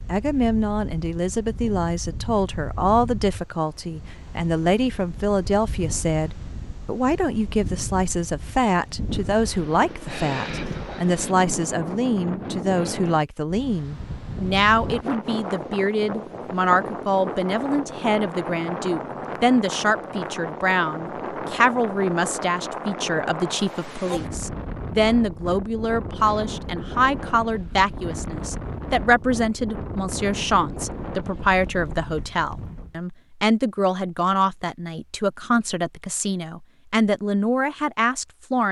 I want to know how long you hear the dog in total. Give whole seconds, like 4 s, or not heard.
not heard.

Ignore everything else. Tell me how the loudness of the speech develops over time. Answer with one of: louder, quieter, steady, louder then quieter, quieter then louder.
steady.